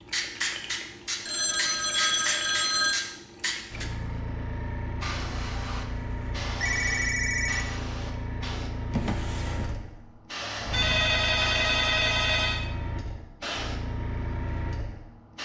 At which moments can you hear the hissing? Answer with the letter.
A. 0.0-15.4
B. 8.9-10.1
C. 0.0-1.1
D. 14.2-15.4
A.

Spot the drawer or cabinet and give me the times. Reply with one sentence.
The drawer or cabinet can be heard from 8.9 to 10.1 s.